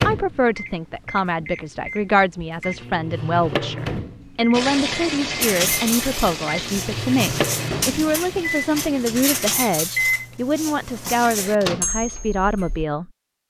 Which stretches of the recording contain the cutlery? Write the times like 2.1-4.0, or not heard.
5.4-12.8.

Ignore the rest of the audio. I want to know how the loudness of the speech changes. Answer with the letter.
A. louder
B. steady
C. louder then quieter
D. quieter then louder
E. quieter
B.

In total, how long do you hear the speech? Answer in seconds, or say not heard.
13 s.